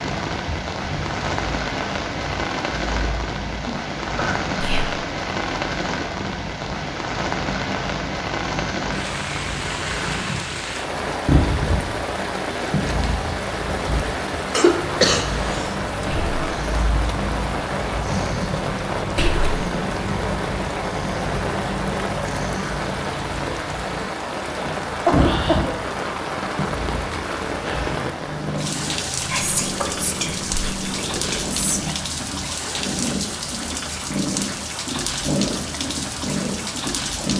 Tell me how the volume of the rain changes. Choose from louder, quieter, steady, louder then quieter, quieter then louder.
steady.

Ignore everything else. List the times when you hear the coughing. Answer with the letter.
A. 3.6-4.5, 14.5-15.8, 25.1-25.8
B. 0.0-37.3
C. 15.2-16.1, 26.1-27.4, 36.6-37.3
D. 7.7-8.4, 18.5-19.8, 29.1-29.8
A.